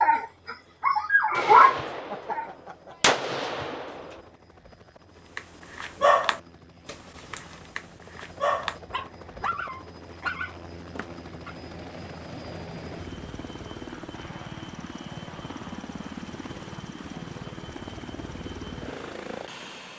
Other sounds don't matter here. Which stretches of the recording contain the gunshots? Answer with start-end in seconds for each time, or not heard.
1.3-4.2.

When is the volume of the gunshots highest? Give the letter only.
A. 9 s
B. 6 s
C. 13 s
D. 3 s
D.